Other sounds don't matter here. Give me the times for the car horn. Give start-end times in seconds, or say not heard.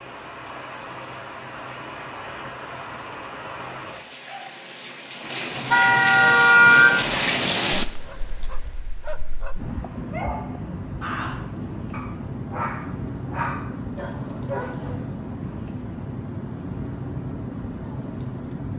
5.7-7.2.